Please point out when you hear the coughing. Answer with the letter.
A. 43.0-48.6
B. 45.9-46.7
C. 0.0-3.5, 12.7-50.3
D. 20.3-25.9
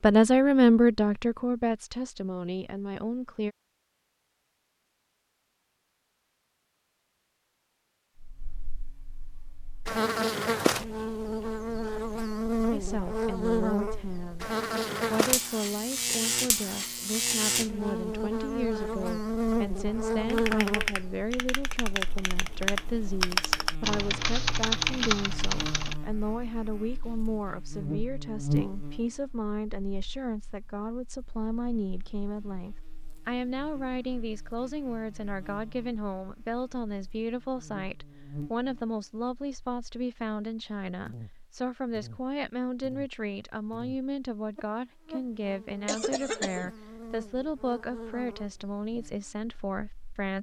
B.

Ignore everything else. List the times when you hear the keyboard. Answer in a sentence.
The keyboard can be heard from 20.3 to 25.9 s.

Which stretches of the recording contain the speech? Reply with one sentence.
You can hear the speech from 0.0 to 3.5 s and from 12.7 to 50.3 s.